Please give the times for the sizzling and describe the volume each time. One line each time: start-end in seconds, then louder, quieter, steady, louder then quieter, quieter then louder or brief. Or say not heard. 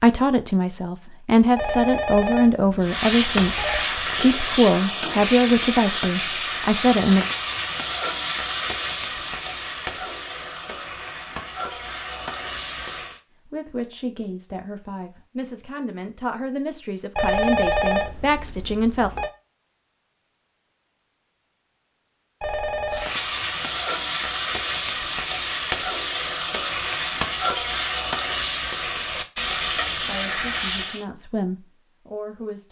2.8-13.2 quieter
22.9-31.1 steady.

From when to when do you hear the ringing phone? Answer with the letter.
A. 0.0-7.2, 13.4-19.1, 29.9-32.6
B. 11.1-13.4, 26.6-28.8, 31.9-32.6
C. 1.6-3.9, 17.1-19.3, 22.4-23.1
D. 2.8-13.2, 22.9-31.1
C.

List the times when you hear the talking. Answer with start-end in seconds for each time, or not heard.
0.0-7.2, 13.4-19.1, 29.9-32.6.